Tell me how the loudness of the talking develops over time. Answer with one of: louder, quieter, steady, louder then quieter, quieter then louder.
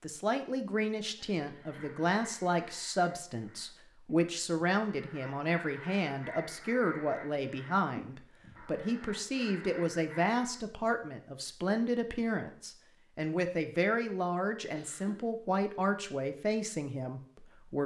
steady.